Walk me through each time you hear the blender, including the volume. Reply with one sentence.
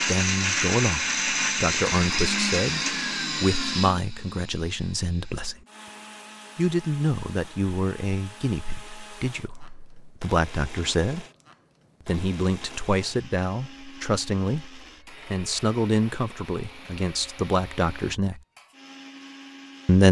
You can hear the blender from 0.0 to 20.0 s, getting quieter.